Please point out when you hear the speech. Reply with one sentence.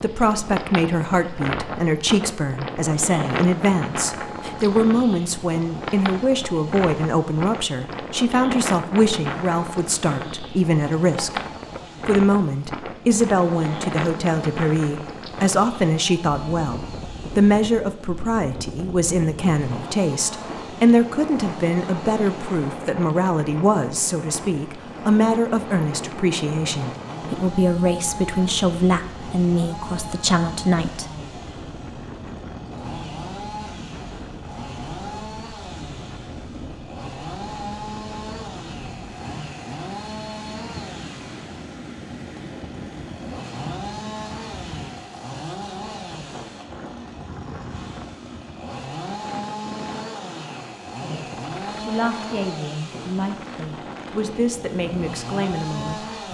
You can hear the speech from 0.0 to 11.4 s, from 12.1 to 31.1 s and from 51.0 to 56.1 s.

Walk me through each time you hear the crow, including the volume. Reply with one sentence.
The crow can't be heard in this clip.